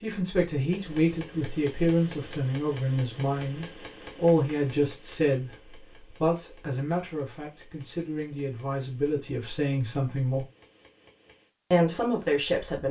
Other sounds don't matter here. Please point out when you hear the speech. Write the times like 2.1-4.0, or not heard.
0.0-10.4, 11.7-12.8.